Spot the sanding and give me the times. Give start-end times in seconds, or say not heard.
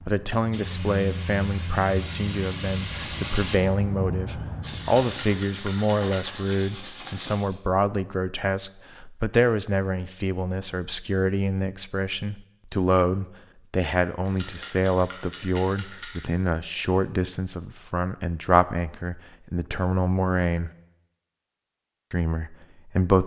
4.6-7.5.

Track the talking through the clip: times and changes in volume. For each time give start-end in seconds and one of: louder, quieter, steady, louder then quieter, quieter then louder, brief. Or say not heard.
0.1-20.7 steady
22.1-23.2 brief.